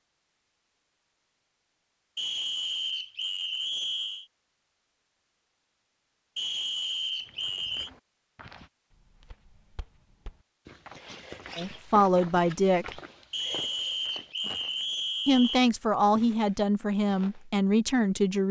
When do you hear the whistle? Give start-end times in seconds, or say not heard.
2.1-4.2, 6.3-7.9, 13.3-15.6.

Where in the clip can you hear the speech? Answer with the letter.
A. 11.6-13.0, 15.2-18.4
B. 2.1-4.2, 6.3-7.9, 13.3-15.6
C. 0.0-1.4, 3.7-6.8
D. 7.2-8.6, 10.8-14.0
A.